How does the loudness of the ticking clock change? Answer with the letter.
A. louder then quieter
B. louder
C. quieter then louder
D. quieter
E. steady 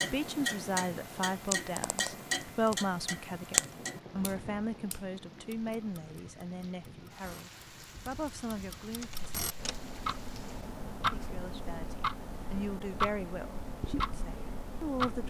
C.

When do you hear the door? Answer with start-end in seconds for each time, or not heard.
9.0-9.9.